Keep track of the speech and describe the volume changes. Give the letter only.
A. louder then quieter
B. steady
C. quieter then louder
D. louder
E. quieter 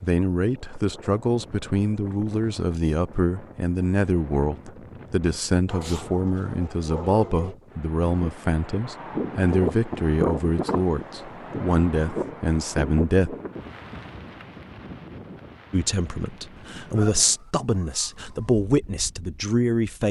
B.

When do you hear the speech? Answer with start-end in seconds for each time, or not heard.
0.0-13.3, 15.7-20.0.